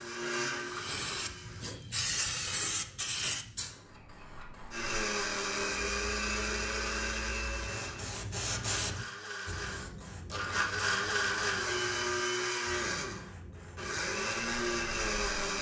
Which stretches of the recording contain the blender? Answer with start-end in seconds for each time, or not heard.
0.0-1.7, 4.7-15.5.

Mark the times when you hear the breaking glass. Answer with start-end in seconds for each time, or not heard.
not heard.